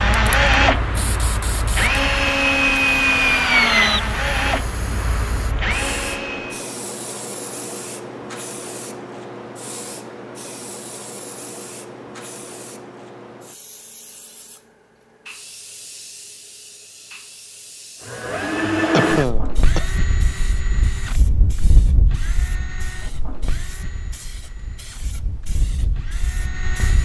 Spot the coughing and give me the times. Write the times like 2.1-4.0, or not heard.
18.9-19.9.